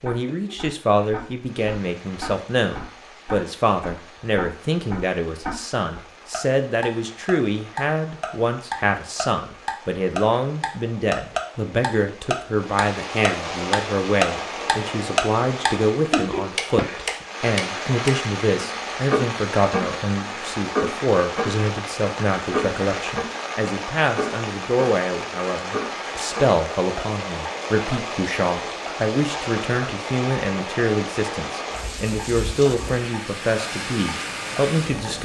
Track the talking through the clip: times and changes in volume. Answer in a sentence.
The talking can be heard from 0.0 to 35.1 s, at a steady volume.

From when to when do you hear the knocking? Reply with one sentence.
The knocking can be heard from 16.8 to 17.2 s.